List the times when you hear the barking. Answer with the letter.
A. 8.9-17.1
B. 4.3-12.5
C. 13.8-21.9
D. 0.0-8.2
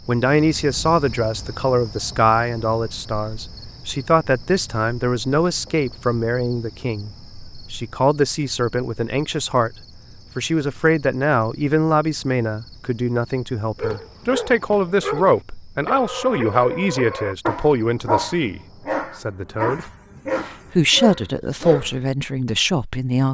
C.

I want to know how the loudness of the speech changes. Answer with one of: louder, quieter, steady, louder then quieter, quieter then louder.
steady.